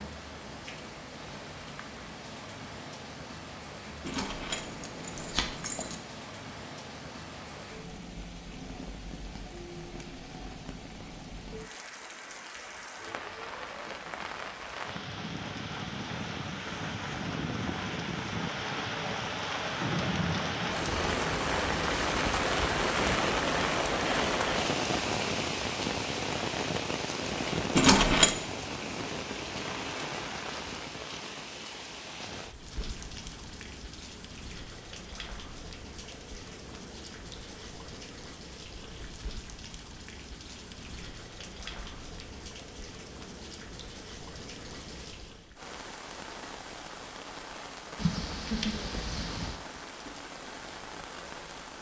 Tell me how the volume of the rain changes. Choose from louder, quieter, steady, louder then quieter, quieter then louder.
louder then quieter.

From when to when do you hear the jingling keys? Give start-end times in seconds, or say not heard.
4.0-6.0, 27.8-28.4, 48.0-49.6.